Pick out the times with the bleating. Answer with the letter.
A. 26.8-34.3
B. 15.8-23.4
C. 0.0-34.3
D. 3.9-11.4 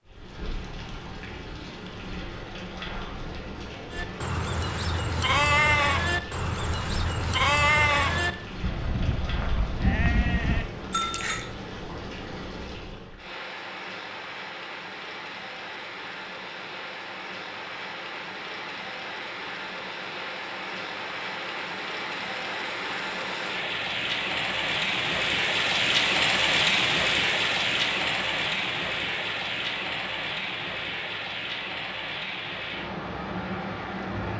D.